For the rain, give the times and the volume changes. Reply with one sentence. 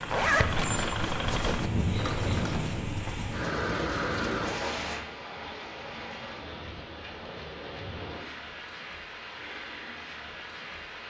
The rain can be heard from 0.0 to 11.0 s, getting quieter.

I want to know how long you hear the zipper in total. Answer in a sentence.
The zipper can be heard for 2 seconds in total.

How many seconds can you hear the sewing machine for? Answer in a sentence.
You can hear the sewing machine for 3 seconds altogether.